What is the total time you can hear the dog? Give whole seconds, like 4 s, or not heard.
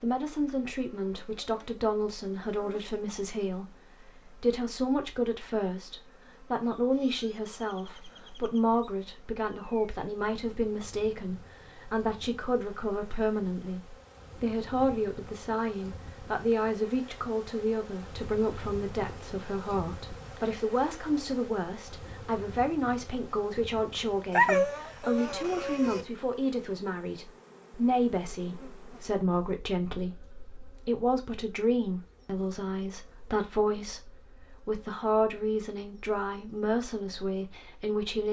2 s.